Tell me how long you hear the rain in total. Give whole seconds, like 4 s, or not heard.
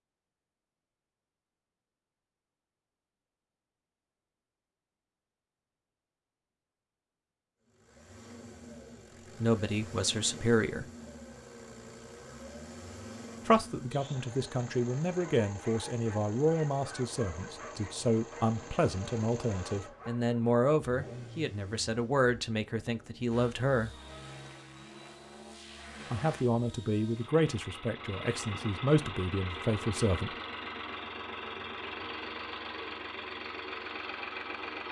not heard.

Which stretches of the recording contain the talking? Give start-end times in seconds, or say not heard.
9.4-10.8, 13.4-23.9, 26.1-30.4.